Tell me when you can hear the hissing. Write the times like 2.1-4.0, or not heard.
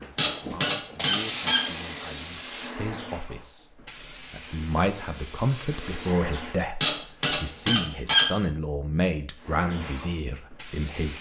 0.0-6.7, 9.3-11.1.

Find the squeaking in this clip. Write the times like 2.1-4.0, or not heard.
0.1-1.6, 6.8-8.3.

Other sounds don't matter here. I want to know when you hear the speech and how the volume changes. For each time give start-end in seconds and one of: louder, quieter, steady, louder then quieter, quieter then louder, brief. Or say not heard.
0.0-11.1 louder.